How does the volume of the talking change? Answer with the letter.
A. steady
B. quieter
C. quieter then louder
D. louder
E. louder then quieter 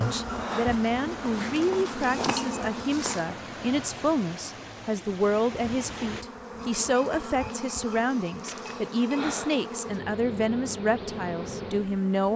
A.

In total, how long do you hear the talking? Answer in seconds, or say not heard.
12 s.